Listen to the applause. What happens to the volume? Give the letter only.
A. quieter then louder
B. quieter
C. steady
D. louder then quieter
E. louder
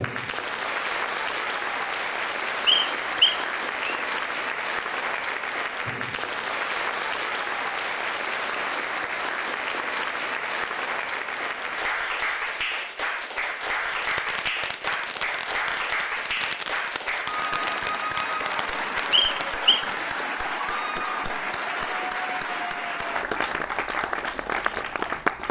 C.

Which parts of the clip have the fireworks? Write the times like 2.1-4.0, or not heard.
13.8-20.1.